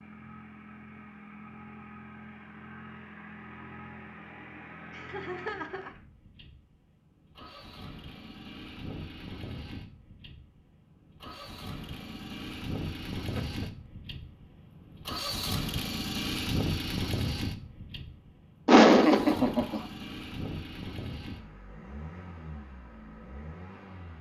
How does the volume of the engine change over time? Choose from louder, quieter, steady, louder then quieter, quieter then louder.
louder then quieter.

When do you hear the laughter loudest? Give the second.
19 s.